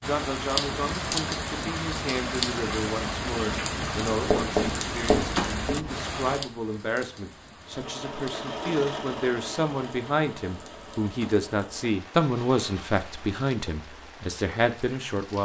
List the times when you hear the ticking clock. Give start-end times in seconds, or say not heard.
not heard.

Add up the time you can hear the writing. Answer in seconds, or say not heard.
2 s.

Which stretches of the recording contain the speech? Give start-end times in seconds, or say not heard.
0.0-15.4.